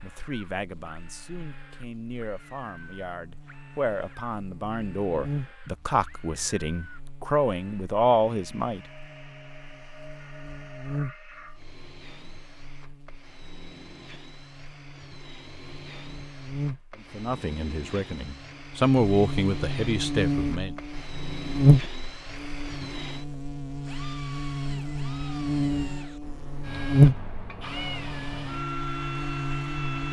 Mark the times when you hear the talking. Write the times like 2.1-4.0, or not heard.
0.0-8.8, 16.9-20.8.